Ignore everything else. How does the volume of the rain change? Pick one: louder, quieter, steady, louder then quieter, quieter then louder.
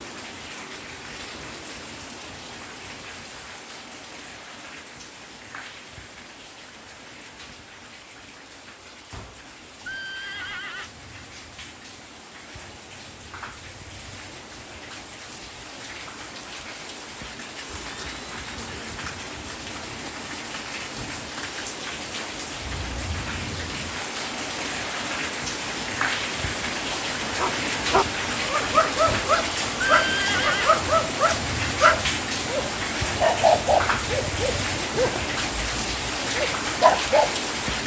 louder.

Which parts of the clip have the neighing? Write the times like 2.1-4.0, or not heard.
9.1-10.9, 17.6-19.2, 29.1-30.8.